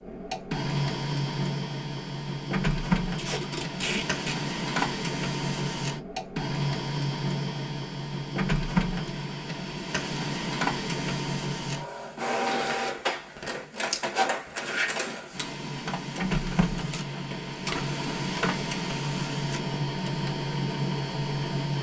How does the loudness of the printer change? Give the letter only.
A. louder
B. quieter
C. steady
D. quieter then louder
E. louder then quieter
C.